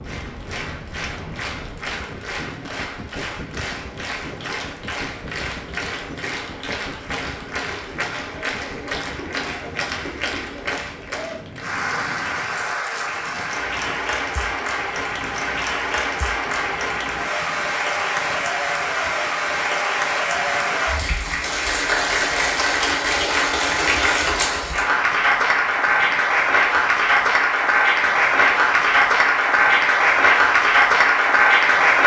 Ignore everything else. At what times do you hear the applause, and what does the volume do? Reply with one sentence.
The applause can be heard from 0.0 to 32.0 s, getting louder.